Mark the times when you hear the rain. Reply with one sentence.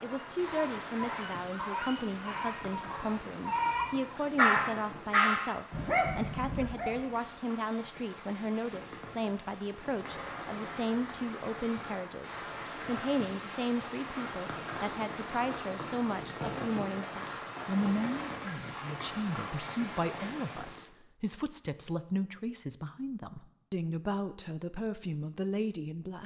You can hear the rain from 0.0 to 20.9 s.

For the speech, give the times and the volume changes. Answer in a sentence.
The speech can be heard from 0.0 to 26.2 s, at a steady volume.